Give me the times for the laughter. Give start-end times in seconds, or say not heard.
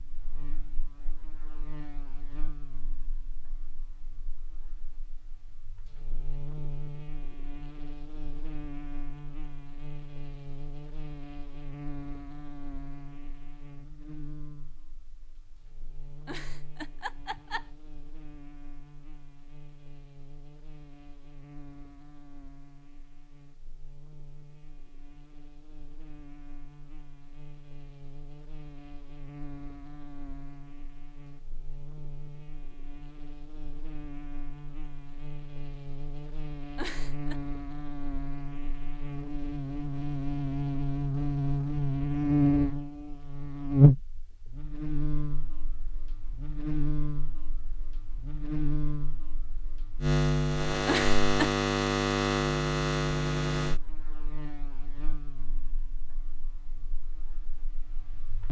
16.2-17.8, 36.8-37.4, 50.9-51.5.